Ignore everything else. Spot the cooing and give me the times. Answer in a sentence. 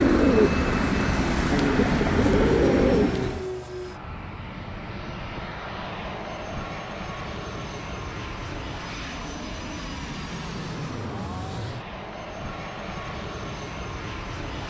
You can hear the cooing from 0.0 to 3.5 s.